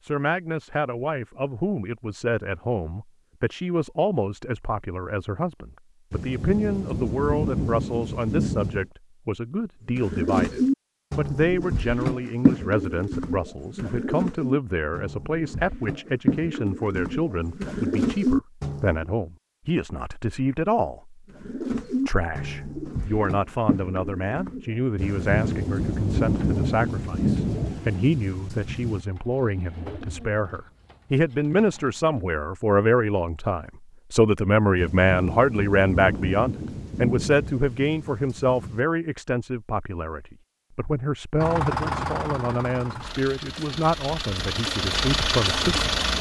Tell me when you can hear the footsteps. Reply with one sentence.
The footsteps can't be heard in this clip.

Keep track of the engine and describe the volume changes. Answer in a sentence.
The loudness of the engine goes down, then up.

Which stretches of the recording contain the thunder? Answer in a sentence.
The thunder can be heard from 6.1 to 8.9 s, from 24.9 to 29.1 s and from 34.8 to 38.8 s.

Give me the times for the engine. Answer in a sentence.
The engine can be heard from 41.4 to 46.1 s.